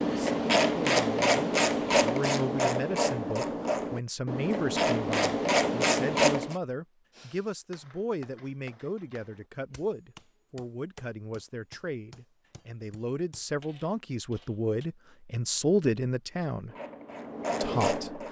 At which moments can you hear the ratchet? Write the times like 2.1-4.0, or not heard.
0.0-6.5, 16.6-18.2.